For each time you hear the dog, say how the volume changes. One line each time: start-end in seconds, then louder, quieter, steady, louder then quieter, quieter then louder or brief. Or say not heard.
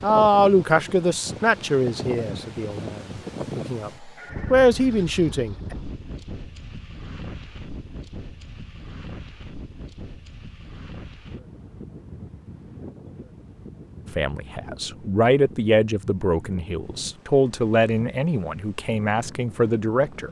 not heard.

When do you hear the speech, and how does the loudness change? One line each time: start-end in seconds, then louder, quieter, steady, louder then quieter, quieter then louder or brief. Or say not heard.
0.0-5.8 quieter then louder
14.1-20.2 steady.